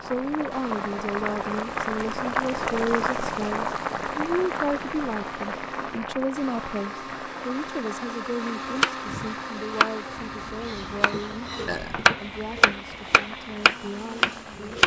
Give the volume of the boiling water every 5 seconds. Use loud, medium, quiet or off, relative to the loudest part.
loud, medium, quiet.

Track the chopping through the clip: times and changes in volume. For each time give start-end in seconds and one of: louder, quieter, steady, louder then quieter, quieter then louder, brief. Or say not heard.
8.7-14.8 quieter then louder.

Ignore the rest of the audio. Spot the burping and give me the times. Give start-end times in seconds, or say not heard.
11.7-12.1.